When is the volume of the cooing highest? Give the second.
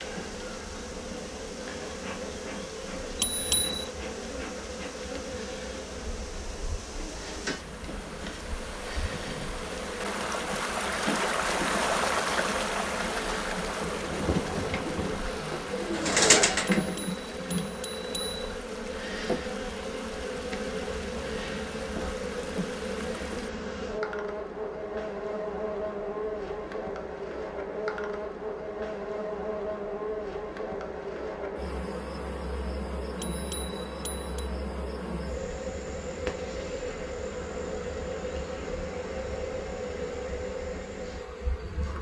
16 s.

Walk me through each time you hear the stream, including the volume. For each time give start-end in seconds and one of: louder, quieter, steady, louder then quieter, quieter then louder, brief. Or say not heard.
0.0-23.5 louder then quieter.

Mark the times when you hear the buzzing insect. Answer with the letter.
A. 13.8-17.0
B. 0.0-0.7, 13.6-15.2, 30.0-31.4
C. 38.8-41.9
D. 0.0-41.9
D.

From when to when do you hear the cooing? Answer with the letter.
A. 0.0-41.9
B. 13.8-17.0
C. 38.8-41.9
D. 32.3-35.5
B.